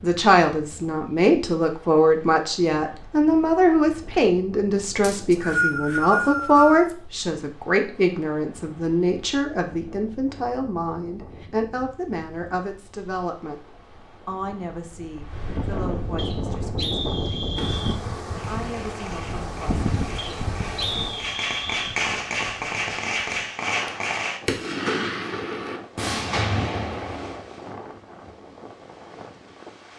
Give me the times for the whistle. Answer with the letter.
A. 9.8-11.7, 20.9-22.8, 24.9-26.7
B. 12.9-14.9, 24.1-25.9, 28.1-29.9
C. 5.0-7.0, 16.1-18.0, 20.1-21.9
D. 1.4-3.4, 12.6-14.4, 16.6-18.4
C.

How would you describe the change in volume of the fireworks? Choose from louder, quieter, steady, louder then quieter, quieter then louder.
louder.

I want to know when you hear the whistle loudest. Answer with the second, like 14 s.
6 s.